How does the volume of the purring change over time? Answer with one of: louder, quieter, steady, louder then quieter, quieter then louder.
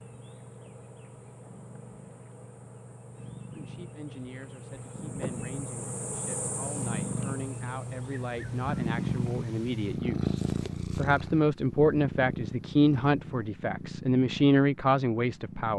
louder then quieter.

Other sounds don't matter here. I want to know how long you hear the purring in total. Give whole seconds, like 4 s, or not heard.
16 s.